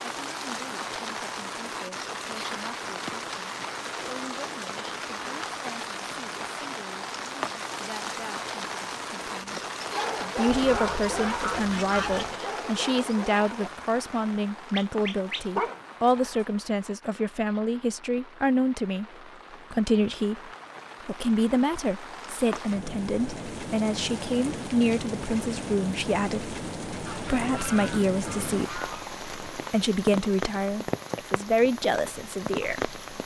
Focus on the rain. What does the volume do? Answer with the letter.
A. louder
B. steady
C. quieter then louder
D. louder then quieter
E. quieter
C.